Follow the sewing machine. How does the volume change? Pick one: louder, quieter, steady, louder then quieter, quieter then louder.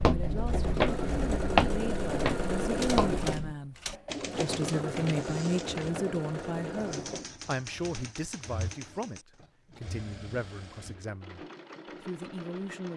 quieter.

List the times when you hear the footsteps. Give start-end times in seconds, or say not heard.
0.0-3.5.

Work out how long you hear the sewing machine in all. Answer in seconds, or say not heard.
13 s.